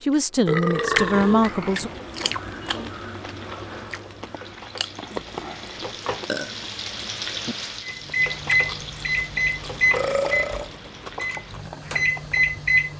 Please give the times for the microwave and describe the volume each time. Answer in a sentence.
You can hear the microwave from 7.8 to 12.9 s, getting quieter then louder.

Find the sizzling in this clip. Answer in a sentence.
The sizzling can be heard from 1.8 to 12.9 s.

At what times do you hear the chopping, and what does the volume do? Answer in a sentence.
The chopping can't be heard in this clip.